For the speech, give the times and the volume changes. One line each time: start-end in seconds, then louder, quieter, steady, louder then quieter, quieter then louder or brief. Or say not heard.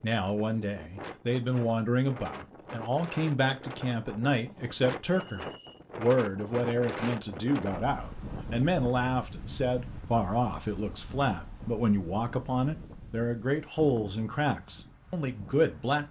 0.0-16.0 steady.